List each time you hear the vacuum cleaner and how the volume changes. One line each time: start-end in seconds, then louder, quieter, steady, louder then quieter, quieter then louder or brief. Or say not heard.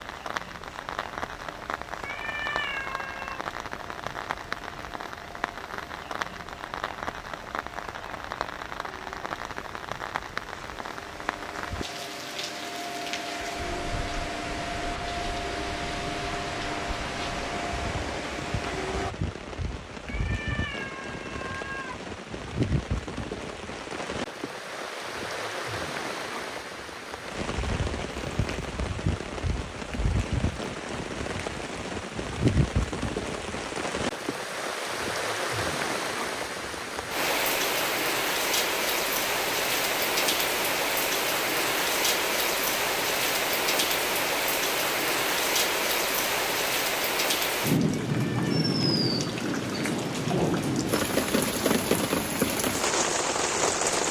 0.0-19.1 louder.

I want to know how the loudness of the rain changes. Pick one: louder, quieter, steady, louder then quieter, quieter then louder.
louder.